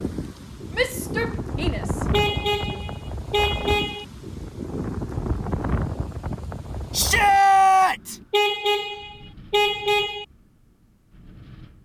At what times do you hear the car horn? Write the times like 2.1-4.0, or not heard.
2.1-4.0, 8.3-10.2.